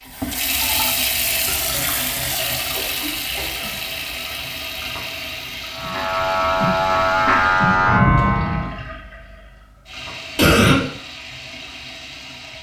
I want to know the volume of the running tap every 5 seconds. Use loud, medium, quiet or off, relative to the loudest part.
loud, medium, medium.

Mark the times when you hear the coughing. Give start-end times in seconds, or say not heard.
2.7-3.8, 10.3-10.8.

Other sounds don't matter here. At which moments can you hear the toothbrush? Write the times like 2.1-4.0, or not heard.
not heard.